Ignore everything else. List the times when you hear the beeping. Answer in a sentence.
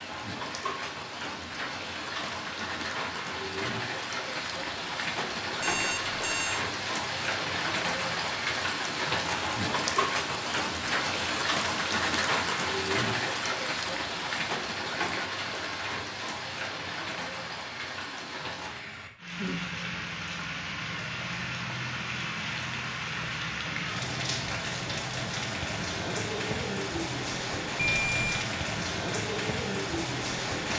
You can hear the beeping from 5.6 to 6.6 s and from 27.9 to 28.4 s.